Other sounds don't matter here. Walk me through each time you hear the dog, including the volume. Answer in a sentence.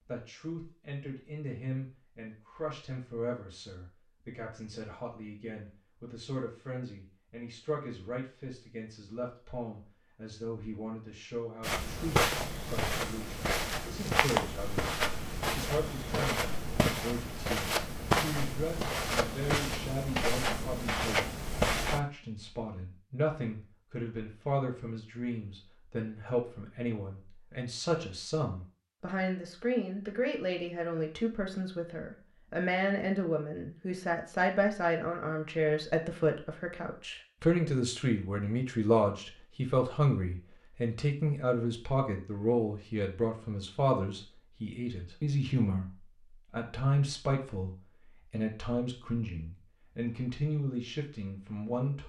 You can't hear the dog here.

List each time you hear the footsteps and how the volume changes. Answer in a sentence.
You can hear the footsteps from 11.6 to 22.0 s, at a steady volume.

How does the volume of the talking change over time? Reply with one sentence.
The volume of the talking goes up.